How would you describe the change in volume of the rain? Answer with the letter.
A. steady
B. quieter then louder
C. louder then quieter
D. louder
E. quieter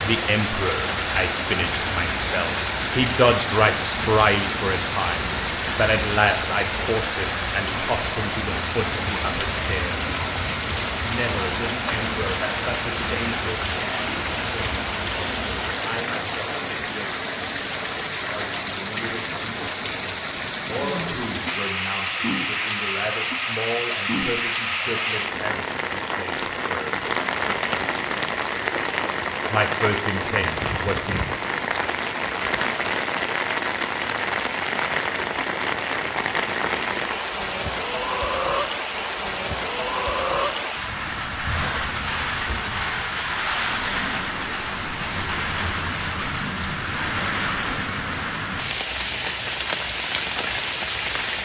A.